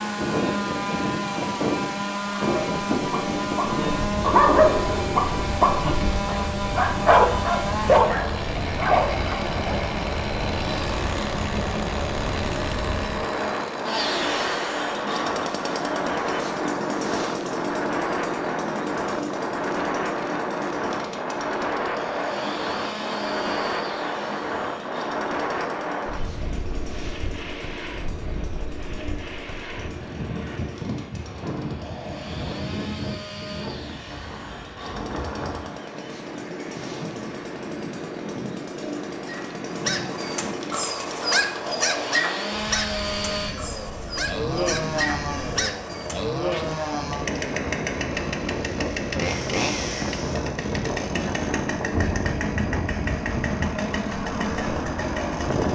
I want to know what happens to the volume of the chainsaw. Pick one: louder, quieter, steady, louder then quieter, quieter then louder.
quieter then louder.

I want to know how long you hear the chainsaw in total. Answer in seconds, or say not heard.
56 s.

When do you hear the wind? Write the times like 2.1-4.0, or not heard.
0.0-55.7.